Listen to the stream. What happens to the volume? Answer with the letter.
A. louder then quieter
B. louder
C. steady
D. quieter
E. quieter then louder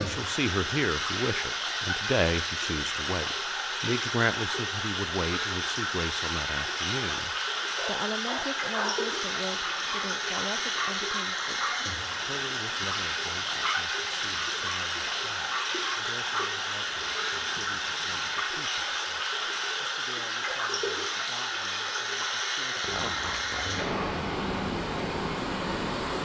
C.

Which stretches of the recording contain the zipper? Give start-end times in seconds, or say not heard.
22.8-24.2.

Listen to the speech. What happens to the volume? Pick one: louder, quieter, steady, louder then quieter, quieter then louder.
quieter.